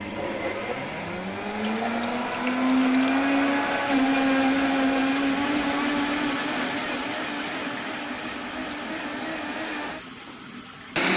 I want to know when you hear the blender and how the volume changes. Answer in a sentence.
You can hear the blender from 0.0 to 11.1 s, getting louder then quieter.